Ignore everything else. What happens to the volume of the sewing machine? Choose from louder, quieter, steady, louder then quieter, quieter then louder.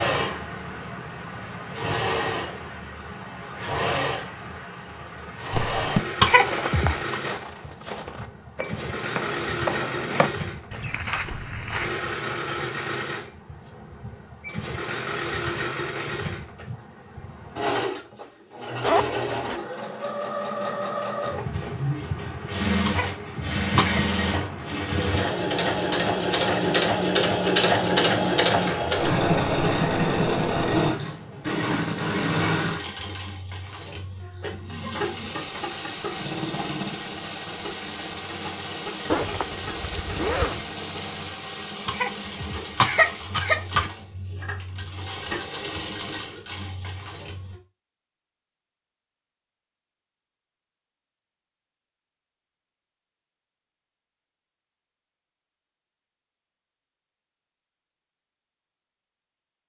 louder then quieter.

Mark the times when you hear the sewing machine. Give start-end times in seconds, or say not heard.
0.0-47.6.